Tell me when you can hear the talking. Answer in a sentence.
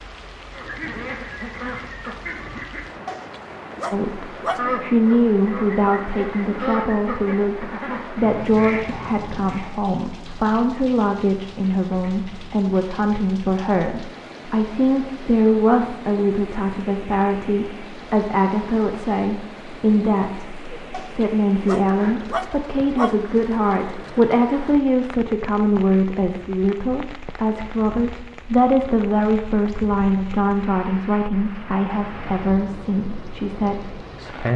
The talking can be heard from 3.9 to 34.5 s.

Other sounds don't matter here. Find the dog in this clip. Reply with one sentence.
The dog can be heard from 3.0 to 4.7 s and from 20.9 to 23.3 s.